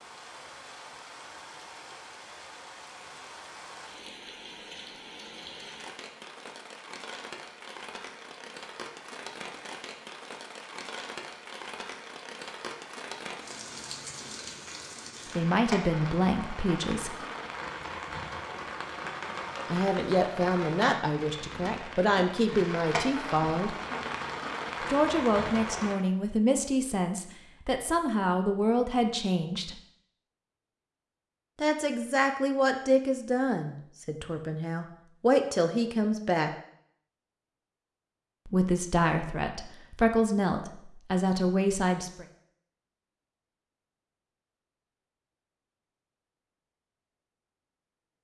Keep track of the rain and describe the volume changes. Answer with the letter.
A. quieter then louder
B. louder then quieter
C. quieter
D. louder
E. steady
D.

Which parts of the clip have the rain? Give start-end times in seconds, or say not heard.
0.0-26.0.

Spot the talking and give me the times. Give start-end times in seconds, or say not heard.
15.3-17.1, 19.7-23.8, 24.8-29.8, 31.6-36.5, 38.5-42.2.